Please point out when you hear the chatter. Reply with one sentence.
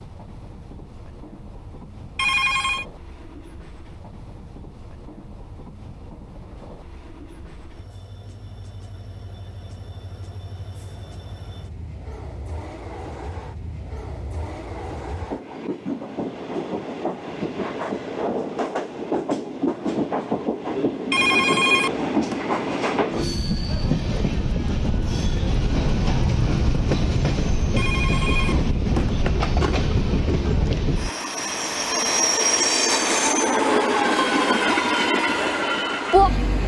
The chatter can't be heard in this clip.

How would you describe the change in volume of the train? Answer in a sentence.
The volume of the train goes up.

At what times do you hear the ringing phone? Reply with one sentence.
The ringing phone can be heard from 2.1 to 2.9 s, from 21.1 to 22.4 s and from 27.8 to 29.8 s.